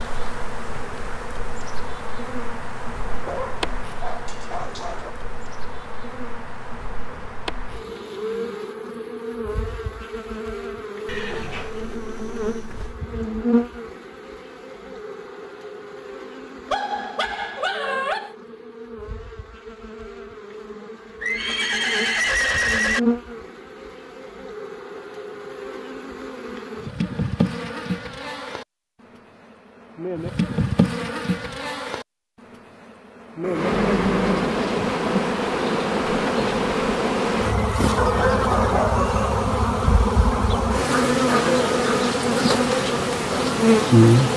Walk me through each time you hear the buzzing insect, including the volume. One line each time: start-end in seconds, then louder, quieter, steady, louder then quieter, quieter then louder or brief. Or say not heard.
0.0-44.3 louder.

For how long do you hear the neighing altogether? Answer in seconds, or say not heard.
5 s.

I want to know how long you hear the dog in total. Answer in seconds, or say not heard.
5 s.